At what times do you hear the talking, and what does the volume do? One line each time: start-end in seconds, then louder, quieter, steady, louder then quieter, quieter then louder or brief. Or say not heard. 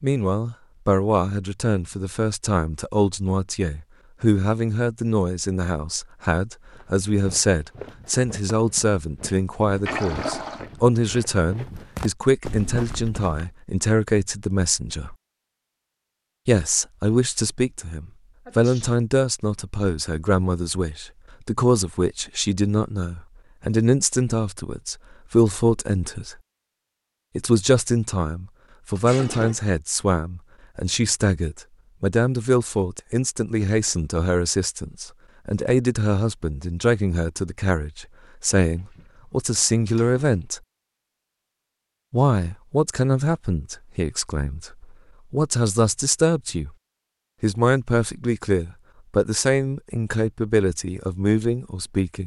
0.0-15.2 steady
16.4-26.4 steady
27.4-40.6 steady
42.1-46.7 quieter then louder
47.4-52.2 steady.